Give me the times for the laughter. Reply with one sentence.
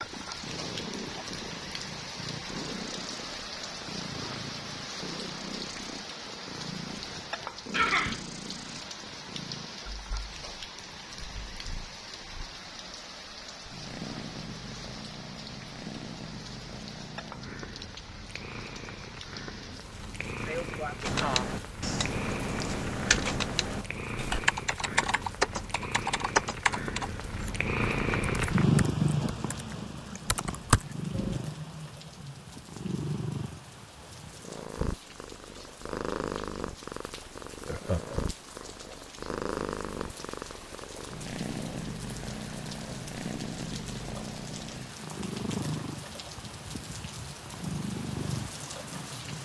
The laughter can be heard from 7.7 to 8.2 s, from 20.4 to 21.5 s and from 37.6 to 38.3 s.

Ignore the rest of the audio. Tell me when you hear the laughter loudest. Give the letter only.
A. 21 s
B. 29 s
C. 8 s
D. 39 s
C.